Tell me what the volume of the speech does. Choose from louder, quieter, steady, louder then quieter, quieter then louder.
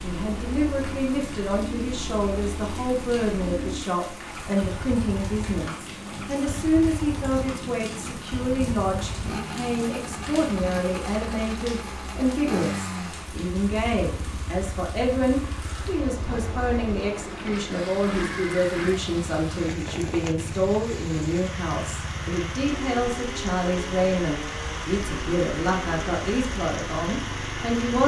steady.